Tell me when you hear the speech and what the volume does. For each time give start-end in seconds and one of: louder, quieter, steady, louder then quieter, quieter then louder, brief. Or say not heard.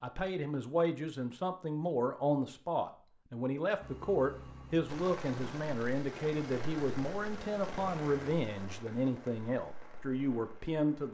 0.0-11.0 steady.